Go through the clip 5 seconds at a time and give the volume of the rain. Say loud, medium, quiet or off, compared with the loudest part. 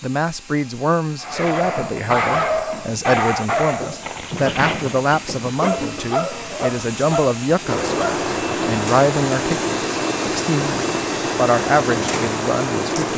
off, loud, loud.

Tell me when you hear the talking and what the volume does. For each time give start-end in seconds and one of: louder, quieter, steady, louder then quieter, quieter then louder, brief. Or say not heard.
0.0-13.1 steady.